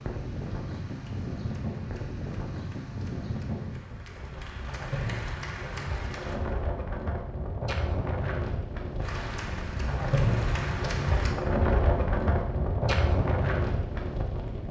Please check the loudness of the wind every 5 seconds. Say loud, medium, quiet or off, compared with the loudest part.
medium, medium, loud.